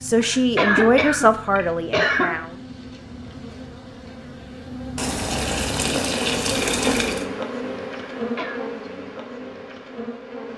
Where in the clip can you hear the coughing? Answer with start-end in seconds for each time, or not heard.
0.1-2.4, 8.2-8.6.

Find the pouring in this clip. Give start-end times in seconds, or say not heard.
5.0-7.2.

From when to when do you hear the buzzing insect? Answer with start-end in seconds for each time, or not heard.
0.0-10.5.